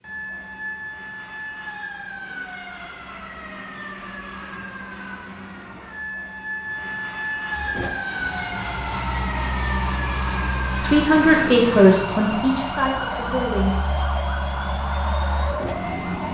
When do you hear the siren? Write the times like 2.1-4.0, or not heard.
0.0-16.2.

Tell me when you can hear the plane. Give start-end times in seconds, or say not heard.
7.5-16.2.